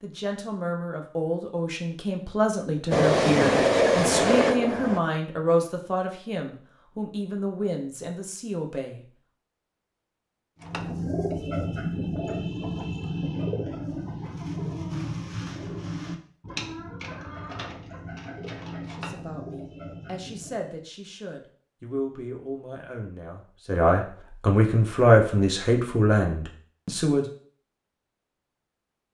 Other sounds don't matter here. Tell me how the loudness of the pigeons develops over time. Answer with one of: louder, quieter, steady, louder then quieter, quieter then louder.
quieter.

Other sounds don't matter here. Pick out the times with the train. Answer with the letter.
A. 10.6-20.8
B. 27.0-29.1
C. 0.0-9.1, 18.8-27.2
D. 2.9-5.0
D.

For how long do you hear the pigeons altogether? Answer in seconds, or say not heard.
10 s.